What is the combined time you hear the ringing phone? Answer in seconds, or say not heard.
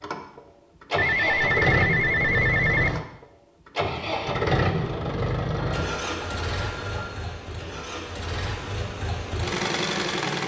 4 s.